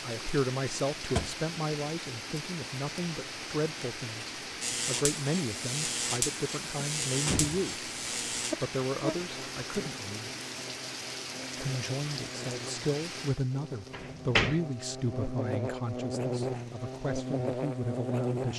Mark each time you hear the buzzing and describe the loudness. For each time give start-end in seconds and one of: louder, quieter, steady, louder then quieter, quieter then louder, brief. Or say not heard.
4.6-18.5 quieter then louder.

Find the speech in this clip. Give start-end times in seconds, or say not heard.
0.0-7.9, 8.6-10.3, 11.6-18.5.